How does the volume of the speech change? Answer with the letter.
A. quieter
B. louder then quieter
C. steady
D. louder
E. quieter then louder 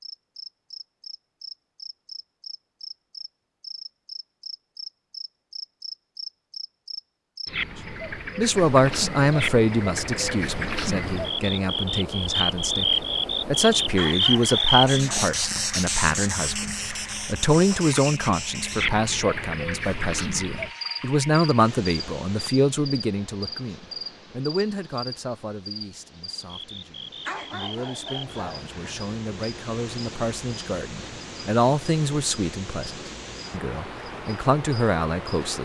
E.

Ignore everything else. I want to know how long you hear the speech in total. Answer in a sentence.
You can hear the speech for 27 seconds altogether.